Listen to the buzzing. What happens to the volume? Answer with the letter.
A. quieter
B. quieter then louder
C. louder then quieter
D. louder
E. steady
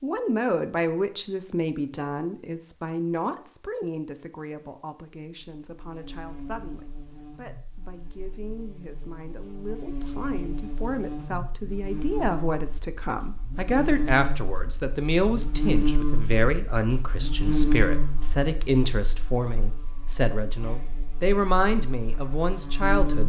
C.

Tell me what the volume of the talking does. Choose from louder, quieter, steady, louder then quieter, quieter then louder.
quieter then louder.